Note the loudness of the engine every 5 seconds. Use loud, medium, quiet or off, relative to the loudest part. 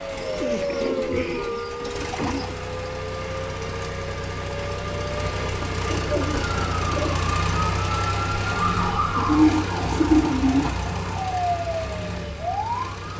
medium, loud, medium.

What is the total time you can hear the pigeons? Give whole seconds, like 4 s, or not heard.
6 s.